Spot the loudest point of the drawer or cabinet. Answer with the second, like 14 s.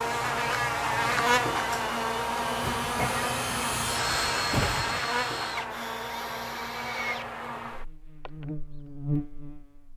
5 s.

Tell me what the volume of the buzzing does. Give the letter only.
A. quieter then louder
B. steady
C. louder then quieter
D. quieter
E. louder
D.